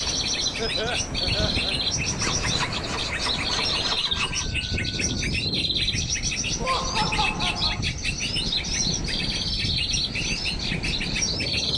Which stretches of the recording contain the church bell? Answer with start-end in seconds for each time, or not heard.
not heard.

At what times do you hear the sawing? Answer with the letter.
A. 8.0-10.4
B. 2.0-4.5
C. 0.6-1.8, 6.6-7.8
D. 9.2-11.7
B.